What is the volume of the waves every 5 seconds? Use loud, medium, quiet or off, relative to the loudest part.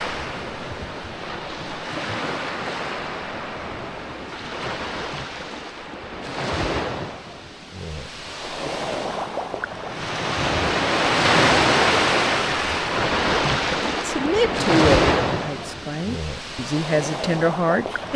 medium, medium, loud, medium.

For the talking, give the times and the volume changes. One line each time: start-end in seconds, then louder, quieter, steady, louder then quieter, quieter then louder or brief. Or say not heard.
14.1-18.1 quieter then louder.